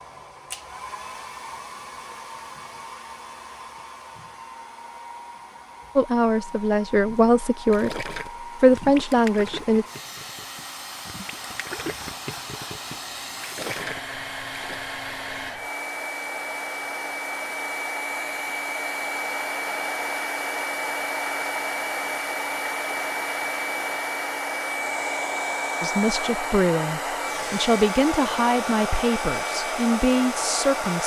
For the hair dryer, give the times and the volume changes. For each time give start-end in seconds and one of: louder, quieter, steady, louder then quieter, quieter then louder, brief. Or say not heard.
0.0-31.0 louder.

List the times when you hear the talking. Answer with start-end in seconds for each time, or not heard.
6.0-9.8, 25.8-31.0.